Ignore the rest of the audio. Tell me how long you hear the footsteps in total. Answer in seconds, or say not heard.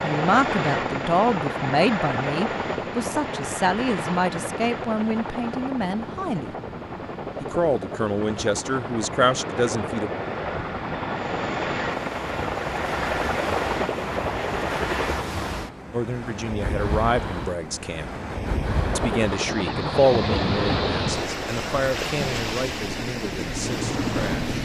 not heard.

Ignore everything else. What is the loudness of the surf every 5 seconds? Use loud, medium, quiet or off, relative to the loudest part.
medium, medium, medium, loud, loud.